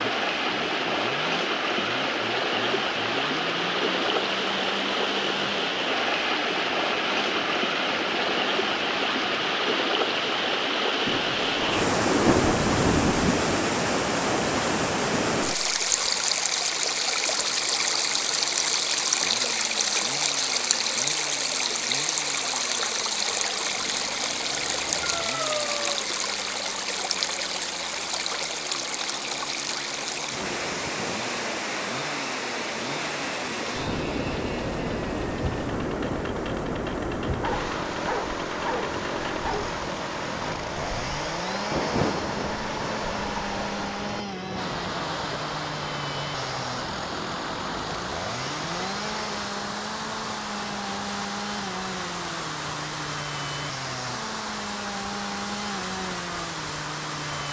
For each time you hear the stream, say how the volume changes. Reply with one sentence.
You can hear the stream from 0.0 to 57.4 s, getting quieter.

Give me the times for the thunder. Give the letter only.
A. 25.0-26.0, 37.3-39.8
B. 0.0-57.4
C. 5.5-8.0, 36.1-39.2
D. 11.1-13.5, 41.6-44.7
D.